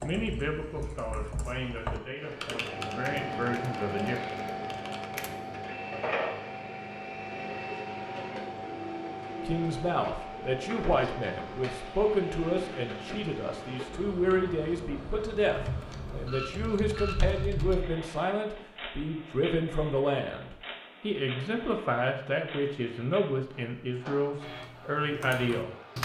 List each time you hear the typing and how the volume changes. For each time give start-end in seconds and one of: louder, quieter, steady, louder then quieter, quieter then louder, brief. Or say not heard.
0.0-5.3 louder then quieter
15.6-17.9 brief
24.4-26.0 brief.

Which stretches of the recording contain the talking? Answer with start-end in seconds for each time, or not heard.
0.0-4.2, 9.4-25.7.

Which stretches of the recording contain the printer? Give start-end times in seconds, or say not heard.
2.2-26.0.